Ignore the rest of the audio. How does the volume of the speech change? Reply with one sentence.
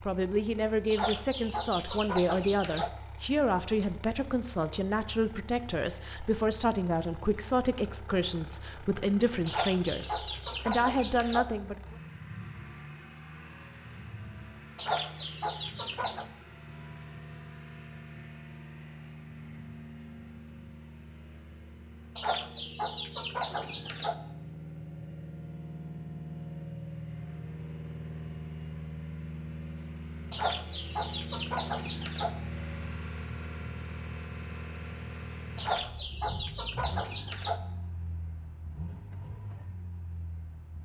The volume of the speech stays about the same.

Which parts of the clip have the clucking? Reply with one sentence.
The clucking can be heard from 0.9 to 2.9 s, from 9.4 to 11.4 s, from 14.8 to 16.2 s, from 22.1 to 24.1 s, from 30.3 to 32.3 s and from 35.5 to 37.6 s.